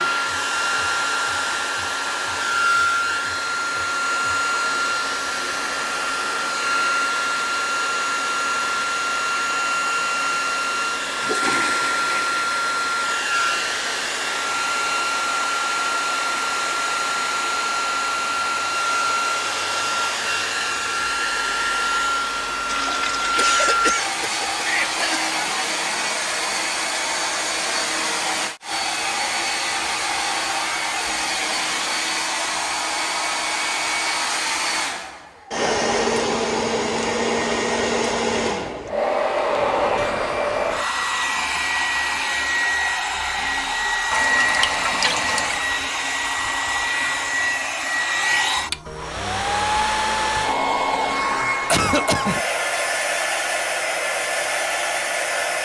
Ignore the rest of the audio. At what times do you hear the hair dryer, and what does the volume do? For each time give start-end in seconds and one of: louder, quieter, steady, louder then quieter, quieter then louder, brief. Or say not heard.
0.0-55.5 steady.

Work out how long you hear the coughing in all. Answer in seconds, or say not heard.
3 s.